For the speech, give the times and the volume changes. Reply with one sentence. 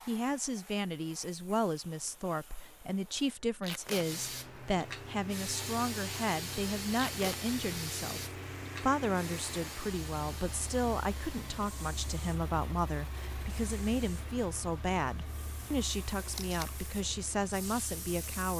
You can hear the speech from 0.1 to 18.5 s, at a steady volume.